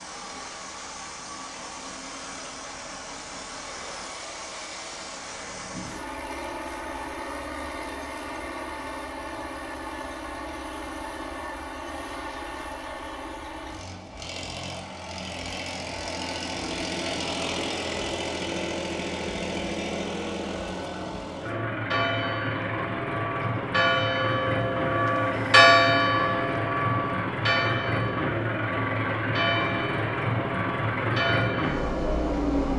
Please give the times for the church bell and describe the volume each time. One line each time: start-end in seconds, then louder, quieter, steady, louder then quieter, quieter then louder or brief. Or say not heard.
21.4-32.4 louder then quieter.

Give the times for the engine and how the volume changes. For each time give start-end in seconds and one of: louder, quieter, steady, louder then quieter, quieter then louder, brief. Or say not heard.
0.0-32.7 louder.